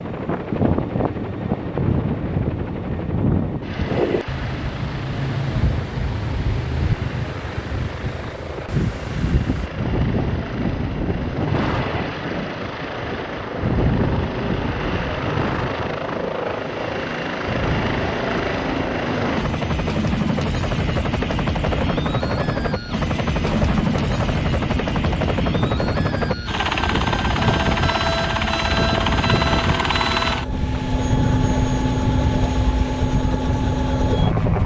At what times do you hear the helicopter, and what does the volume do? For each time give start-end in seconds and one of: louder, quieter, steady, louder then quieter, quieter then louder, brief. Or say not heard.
0.0-34.6 louder.